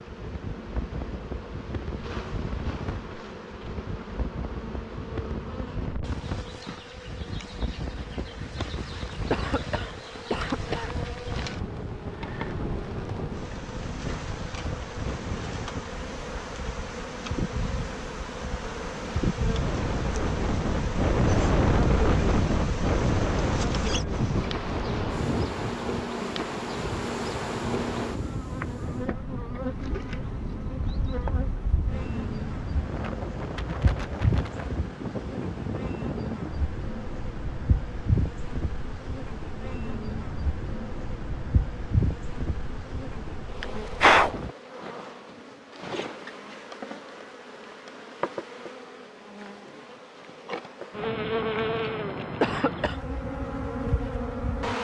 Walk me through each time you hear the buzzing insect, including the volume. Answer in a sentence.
The buzzing insect can be heard from 0.0 to 54.7 s, getting louder.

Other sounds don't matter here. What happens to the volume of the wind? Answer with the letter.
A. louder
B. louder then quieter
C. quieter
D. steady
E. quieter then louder
B.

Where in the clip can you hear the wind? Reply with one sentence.
You can hear the wind from 0.0 to 44.5 s.